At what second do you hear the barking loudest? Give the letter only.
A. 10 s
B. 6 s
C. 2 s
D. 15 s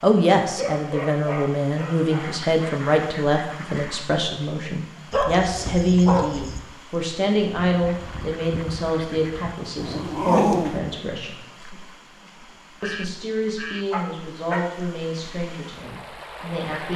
A.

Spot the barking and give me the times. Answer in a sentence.
You can hear the barking from 0.4 to 2.4 s, from 5.1 to 6.6 s, from 9.8 to 10.8 s and from 13.9 to 14.7 s.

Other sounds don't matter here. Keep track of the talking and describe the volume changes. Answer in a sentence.
The volume of the talking goes down.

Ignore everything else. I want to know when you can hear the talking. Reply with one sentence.
You can hear the talking from 0.0 to 11.4 s and from 12.8 to 16.9 s.